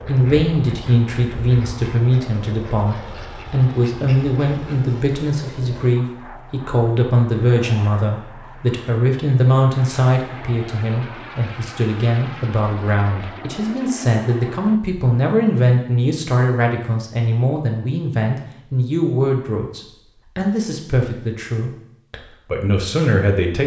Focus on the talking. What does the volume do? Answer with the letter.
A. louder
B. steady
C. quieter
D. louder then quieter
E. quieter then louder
B.